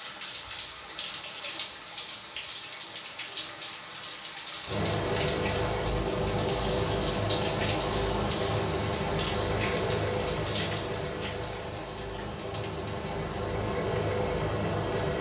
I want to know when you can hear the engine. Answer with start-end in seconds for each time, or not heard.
4.7-15.1.